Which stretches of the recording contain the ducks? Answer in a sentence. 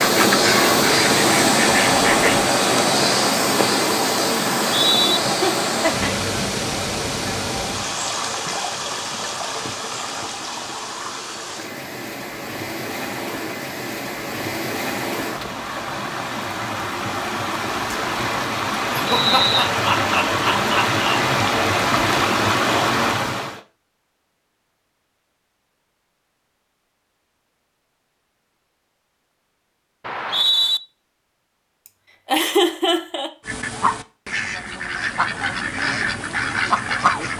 You can hear the ducks from 0.0 to 2.5 s and from 33.5 to 37.3 s.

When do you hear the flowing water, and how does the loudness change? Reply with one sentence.
You can hear the flowing water from 0.0 to 23.6 s, getting quieter then louder.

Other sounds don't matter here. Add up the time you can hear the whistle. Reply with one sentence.
The whistle can be heard for 2 seconds in total.